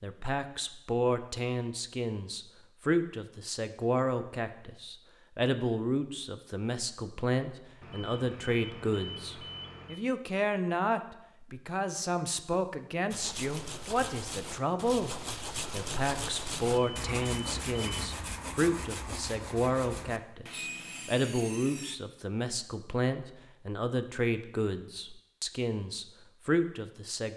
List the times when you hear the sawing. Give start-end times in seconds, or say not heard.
13.1-21.9.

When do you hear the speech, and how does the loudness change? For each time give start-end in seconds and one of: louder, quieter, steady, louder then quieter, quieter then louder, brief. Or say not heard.
0.0-27.3 steady.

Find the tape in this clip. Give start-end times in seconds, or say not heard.
not heard.